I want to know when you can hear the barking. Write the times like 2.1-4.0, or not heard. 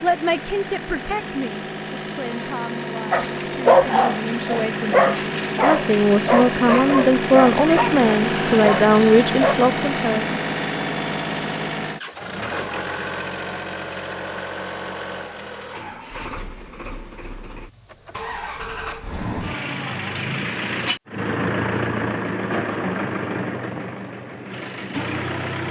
3.1-9.6.